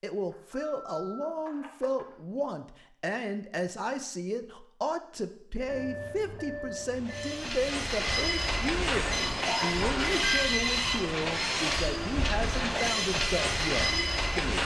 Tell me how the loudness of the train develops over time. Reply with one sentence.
The loudness of the train stays about the same.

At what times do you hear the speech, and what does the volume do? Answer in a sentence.
The speech can be heard from 0.0 to 14.5 s, at a steady volume.